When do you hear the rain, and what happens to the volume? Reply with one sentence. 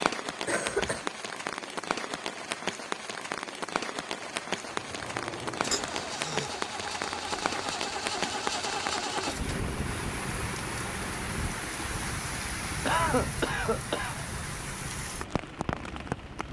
You can hear the rain from 0.0 to 16.4 s, at a steady volume.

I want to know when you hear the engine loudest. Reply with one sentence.
The volume of the engine peaks at 9 seconds.